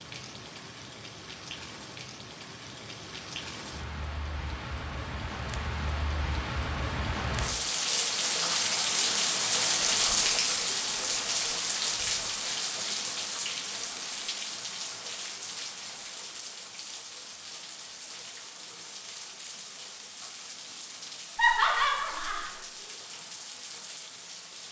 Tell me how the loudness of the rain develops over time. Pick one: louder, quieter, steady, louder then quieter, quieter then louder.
louder then quieter.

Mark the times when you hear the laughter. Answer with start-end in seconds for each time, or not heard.
21.4-22.5.